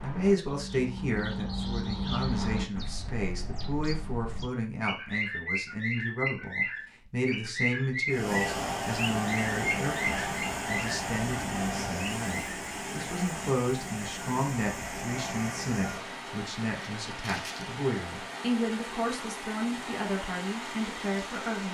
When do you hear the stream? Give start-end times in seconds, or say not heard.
8.1-21.6.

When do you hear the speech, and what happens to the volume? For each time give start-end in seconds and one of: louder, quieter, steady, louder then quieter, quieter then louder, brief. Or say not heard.
0.0-21.6 steady.